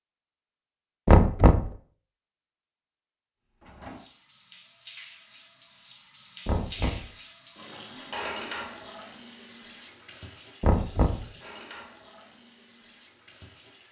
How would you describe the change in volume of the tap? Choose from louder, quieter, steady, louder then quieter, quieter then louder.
louder then quieter.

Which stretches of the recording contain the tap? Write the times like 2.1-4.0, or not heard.
3.6-13.8.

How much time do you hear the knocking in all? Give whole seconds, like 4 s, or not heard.
2 s.